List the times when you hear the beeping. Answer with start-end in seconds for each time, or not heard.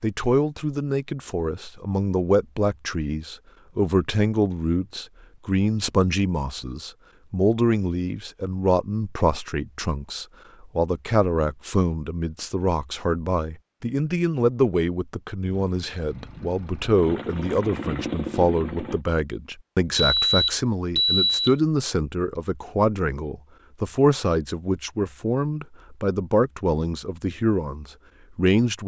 19.9-21.6.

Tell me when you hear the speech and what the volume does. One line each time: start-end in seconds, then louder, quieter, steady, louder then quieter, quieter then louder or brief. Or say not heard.
0.0-28.8 steady.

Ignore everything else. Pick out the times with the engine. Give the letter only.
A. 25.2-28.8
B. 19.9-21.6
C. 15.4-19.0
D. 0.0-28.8
C.